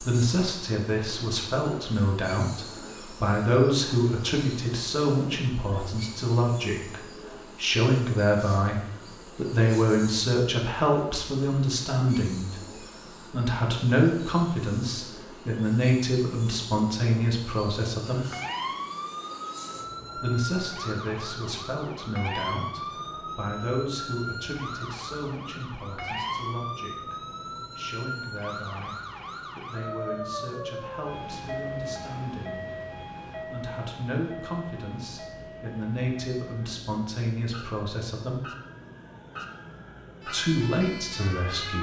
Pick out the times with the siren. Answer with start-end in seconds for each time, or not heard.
18.1-41.7.